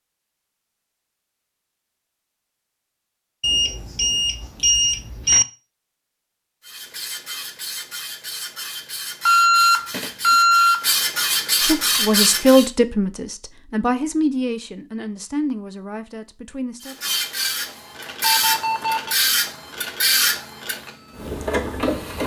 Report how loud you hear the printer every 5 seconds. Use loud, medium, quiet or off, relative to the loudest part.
off, medium, loud, loud, loud.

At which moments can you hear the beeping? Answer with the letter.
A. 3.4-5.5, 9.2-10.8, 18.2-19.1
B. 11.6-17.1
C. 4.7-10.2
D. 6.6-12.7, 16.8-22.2
A.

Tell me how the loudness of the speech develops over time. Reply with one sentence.
The volume of the speech goes down.